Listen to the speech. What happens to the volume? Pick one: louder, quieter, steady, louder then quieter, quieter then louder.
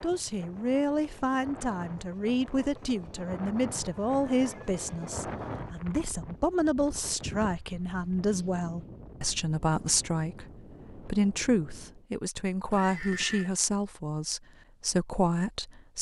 steady.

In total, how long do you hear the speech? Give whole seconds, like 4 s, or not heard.
16 s.